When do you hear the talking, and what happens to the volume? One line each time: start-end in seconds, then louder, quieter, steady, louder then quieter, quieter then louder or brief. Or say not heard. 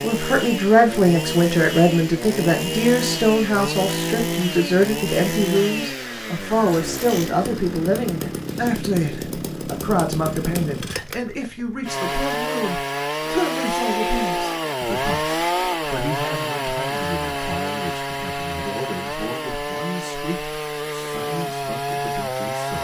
0.0-22.7 quieter.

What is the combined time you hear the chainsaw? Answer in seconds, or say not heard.
23 s.